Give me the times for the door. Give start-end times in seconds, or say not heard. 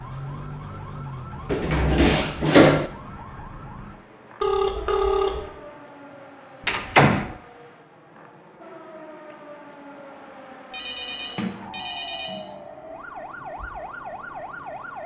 1.5-2.9, 6.7-7.3, 11.3-12.6.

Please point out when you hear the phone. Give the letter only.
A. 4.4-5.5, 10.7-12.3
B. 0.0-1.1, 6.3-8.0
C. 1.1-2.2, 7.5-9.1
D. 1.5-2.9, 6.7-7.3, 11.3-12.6
A.